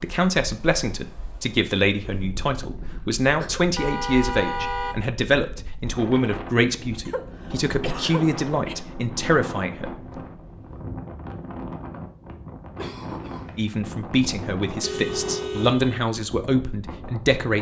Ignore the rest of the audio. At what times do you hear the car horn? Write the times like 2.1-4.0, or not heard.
3.8-5.0, 14.8-15.8.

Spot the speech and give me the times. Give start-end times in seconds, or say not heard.
0.0-10.1, 13.6-17.5.